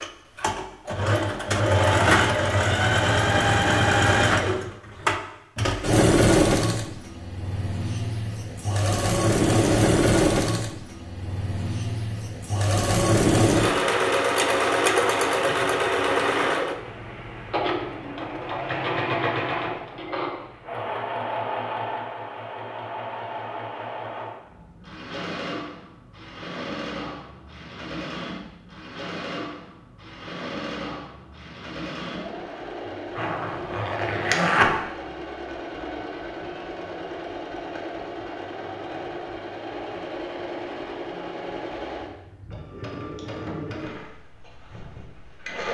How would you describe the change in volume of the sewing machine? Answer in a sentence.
The volume of the sewing machine goes down.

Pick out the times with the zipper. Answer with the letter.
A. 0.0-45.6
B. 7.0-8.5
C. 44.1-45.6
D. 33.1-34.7
D.